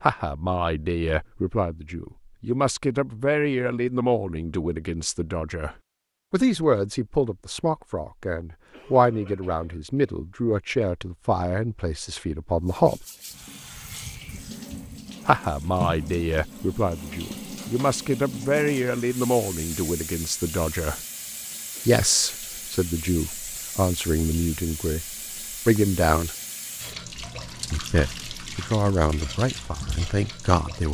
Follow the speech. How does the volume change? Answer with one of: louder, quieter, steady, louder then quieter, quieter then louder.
steady.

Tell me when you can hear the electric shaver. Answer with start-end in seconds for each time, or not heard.
not heard.